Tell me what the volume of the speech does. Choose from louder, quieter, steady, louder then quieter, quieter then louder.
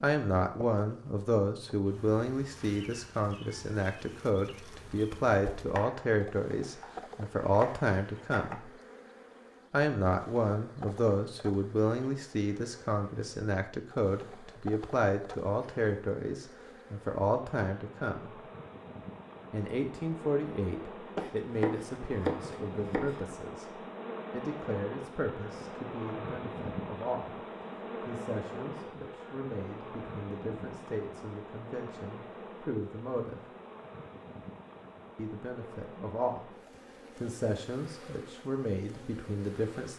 quieter.